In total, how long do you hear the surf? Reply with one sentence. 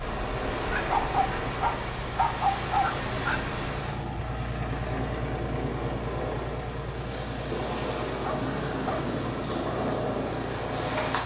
The surf can be heard for 11 seconds in total.